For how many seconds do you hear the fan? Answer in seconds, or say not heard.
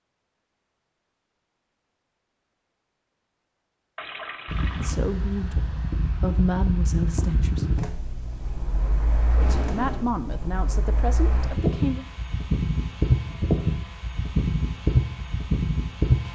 12 s.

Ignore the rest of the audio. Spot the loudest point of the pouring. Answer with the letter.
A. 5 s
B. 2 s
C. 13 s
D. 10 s
D.